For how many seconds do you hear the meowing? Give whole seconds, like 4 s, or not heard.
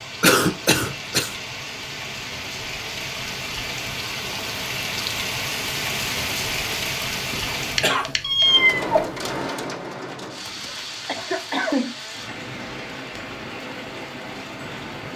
2 s.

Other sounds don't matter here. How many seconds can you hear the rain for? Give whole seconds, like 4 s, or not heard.
15 s.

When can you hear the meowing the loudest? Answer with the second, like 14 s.
9 s.